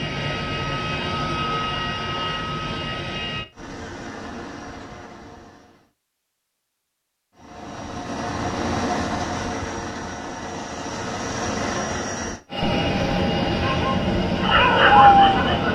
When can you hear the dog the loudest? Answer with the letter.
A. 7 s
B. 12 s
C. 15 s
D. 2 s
C.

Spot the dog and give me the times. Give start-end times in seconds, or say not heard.
13.6-15.7.